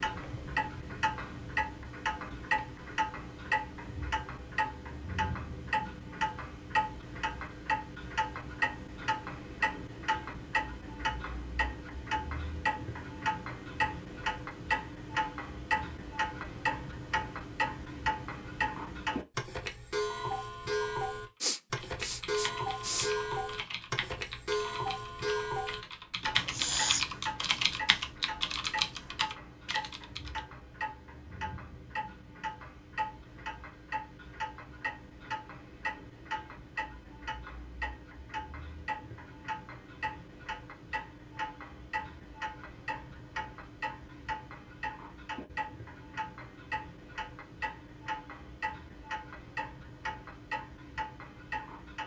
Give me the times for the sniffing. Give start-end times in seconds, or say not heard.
21.4-23.1, 26.5-27.1.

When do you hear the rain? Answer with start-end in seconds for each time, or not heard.
not heard.